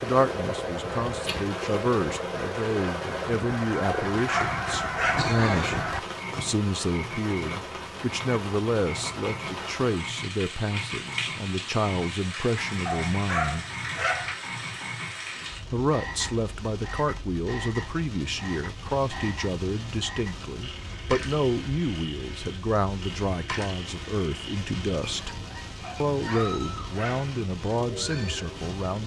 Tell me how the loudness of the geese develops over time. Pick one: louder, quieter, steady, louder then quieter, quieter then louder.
louder.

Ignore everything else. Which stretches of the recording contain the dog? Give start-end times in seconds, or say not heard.
3.8-5.3, 12.8-14.3, 25.8-27.4.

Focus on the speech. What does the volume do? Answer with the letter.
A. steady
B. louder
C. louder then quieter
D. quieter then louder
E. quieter
A.